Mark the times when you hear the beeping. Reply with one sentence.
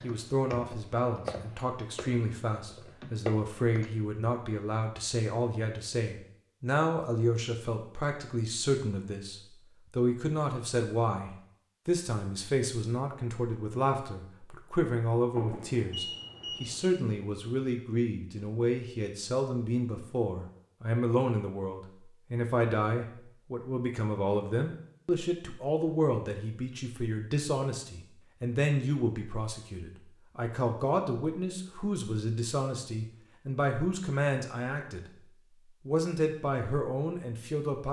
You can hear the beeping from 15.3 to 16.9 s.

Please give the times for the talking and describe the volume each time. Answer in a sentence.
You can hear the talking from 0.0 to 35.0 s, at a steady volume; and briefly from 35.9 to 37.8 s.